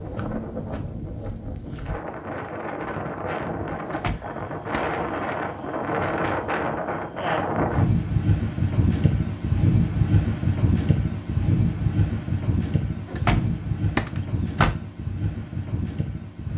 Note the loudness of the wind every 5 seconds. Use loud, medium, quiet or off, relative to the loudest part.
medium, loud, loud, medium.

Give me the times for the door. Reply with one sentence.
You can hear the door from 3.9 to 5.0 s and from 13.1 to 14.8 s.